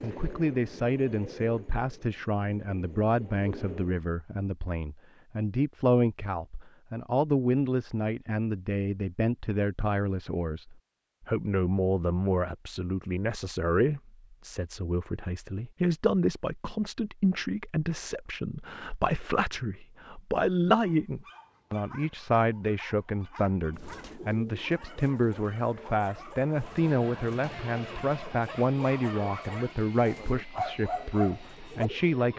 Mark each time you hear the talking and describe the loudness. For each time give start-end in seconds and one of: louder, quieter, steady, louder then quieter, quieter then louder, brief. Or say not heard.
0.0-32.3 steady.